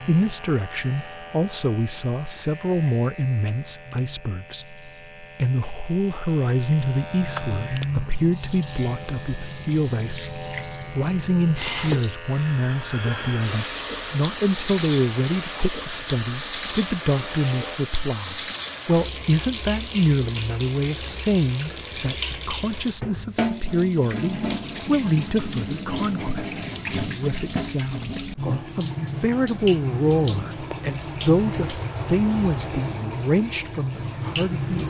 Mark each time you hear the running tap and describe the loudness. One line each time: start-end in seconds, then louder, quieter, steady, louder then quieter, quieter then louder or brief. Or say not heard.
0.0-34.8 louder.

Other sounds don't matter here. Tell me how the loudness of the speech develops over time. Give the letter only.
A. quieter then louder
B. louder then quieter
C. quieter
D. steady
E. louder
D.